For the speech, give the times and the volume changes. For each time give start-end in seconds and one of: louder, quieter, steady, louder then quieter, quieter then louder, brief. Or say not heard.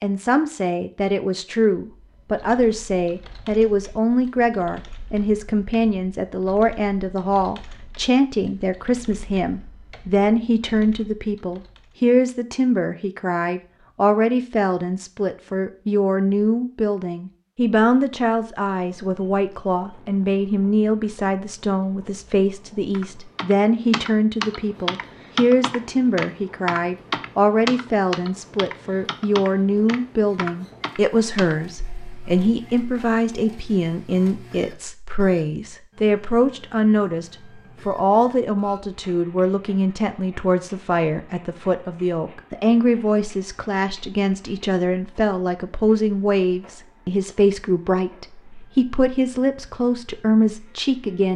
0.0-51.3 steady.